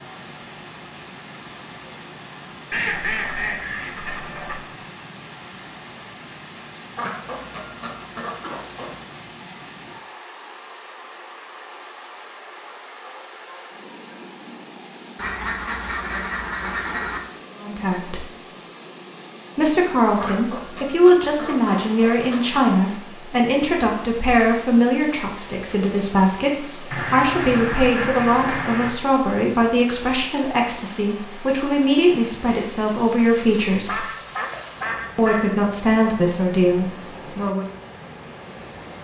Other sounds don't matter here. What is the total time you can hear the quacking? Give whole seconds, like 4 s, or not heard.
12 s.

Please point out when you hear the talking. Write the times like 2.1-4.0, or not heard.
17.6-18.2, 19.6-34.0, 35.1-37.6.